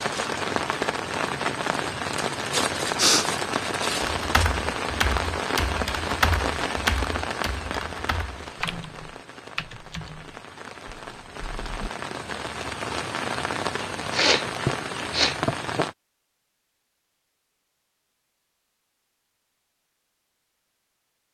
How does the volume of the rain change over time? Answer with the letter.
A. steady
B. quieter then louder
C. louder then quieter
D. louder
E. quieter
B.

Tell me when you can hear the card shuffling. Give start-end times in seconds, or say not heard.
not heard.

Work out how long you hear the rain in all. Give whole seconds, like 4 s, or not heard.
16 s.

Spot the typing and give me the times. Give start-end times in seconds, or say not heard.
4.0-11.9.